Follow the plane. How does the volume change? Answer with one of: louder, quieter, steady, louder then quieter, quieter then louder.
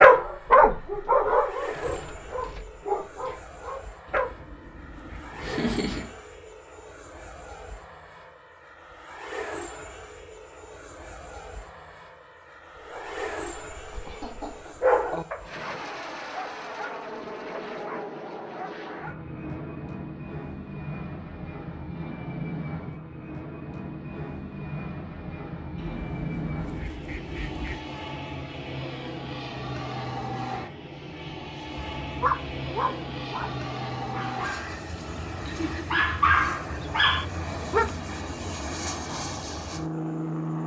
louder.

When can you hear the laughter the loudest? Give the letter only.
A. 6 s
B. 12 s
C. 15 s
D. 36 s
A.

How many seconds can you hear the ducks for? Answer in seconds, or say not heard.
4 s.